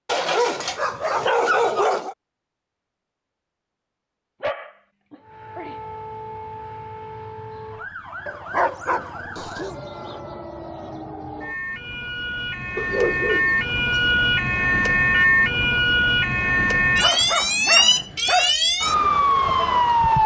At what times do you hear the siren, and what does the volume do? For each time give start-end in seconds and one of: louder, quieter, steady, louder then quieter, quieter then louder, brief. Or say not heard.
5.2-20.2 louder.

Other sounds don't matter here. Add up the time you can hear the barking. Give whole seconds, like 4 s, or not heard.
8 s.